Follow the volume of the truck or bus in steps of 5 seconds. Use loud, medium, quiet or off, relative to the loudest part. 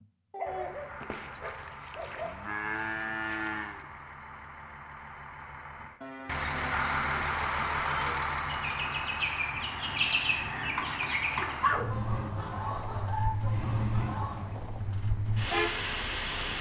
quiet, loud, medium, loud.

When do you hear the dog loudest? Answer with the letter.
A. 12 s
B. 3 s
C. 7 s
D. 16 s
A.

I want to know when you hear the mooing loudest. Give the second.
3 s.